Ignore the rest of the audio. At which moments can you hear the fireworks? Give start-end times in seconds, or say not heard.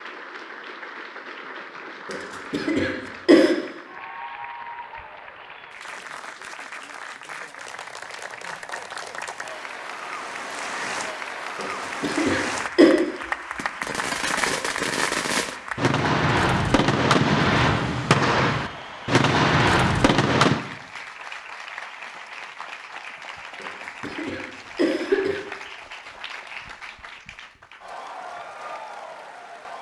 13.6-20.6.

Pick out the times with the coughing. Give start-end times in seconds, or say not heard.
2.1-3.5, 11.6-12.9, 23.6-25.4.